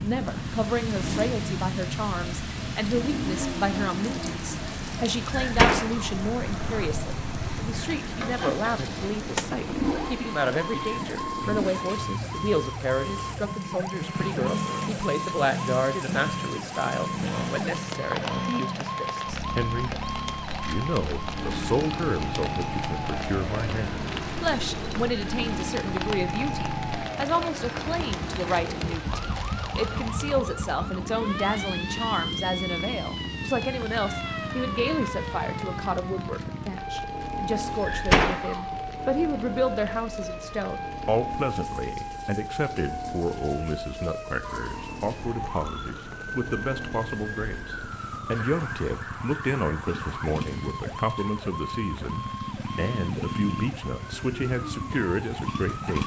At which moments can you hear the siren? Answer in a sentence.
The siren can be heard from 0.0 to 56.0 s.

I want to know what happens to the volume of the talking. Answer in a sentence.
The loudness of the talking stays about the same.